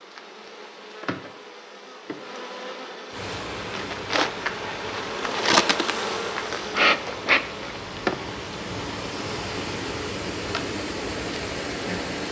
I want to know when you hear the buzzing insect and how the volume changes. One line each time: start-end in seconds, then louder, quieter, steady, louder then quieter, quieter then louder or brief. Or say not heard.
0.0-12.2 louder then quieter.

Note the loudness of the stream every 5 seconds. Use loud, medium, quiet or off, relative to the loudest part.
medium, medium, loud.